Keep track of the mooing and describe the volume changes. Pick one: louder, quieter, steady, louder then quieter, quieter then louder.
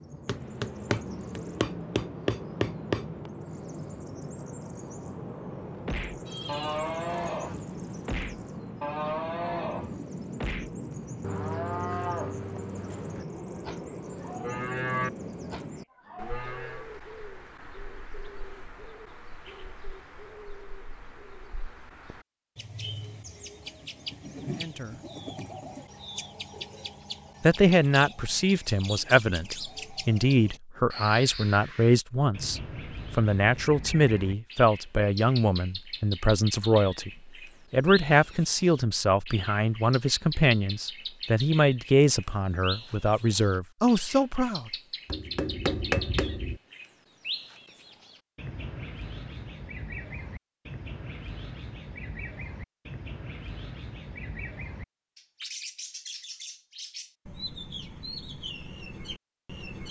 quieter then louder.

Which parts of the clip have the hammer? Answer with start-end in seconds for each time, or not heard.
0.2-3.3, 45.0-46.6.